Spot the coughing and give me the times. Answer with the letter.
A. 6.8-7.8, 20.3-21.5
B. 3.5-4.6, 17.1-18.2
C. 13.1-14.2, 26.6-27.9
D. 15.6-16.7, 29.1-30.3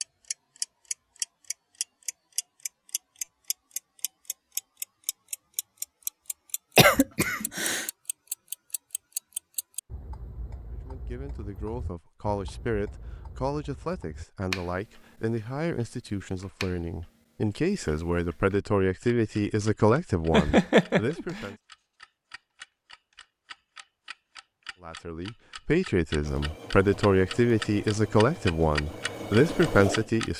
A.